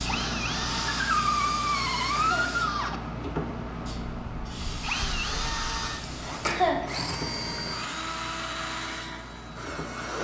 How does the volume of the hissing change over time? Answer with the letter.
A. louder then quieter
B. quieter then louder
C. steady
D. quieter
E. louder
D.